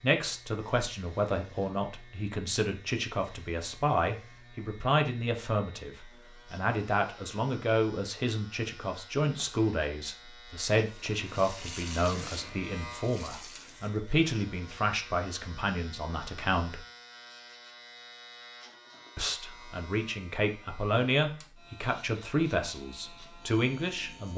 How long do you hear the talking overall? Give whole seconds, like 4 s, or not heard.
22 s.